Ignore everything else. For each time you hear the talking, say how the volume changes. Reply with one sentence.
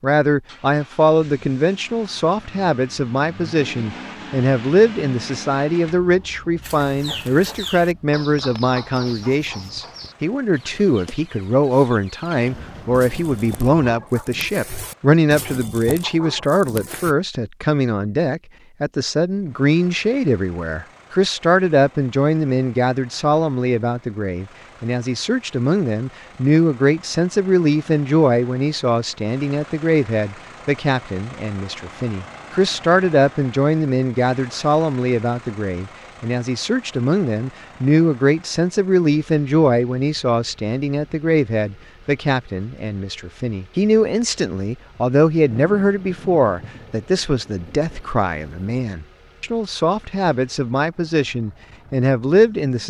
You can hear the talking from 0.0 to 52.8 s, at a steady volume.